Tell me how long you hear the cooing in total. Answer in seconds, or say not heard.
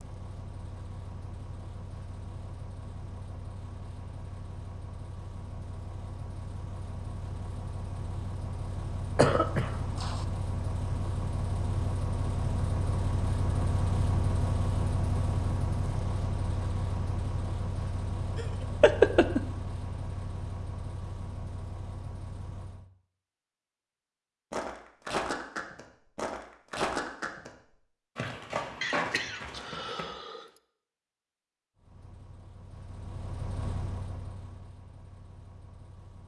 not heard.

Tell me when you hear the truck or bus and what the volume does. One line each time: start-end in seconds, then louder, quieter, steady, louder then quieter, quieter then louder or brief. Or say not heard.
0.0-22.9 louder then quieter
31.8-36.2 louder then quieter.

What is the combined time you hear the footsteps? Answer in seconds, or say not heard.
5 s.